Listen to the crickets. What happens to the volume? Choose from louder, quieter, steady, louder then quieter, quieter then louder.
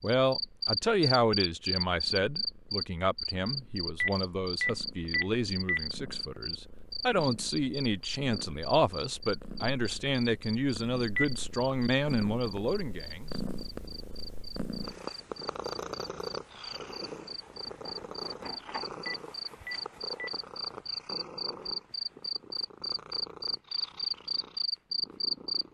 quieter then louder.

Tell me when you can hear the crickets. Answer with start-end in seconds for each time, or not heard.
0.0-25.7.